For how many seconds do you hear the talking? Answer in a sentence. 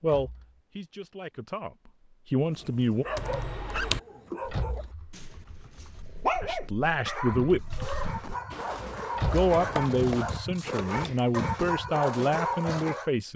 You can hear the talking for 8 seconds altogether.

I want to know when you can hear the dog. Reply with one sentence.
The dog can be heard from 2.4 to 13.1 s.